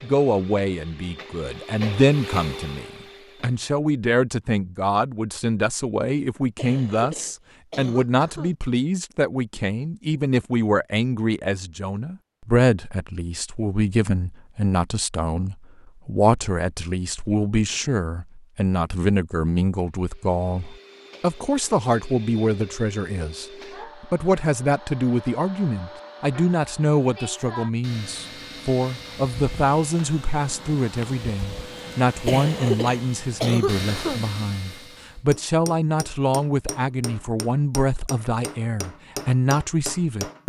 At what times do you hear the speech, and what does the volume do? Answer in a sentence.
You can hear the speech from 0.0 to 40.4 s, at a steady volume.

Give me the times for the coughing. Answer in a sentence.
The coughing can be heard from 6.5 to 8.6 s and from 32.2 to 34.2 s.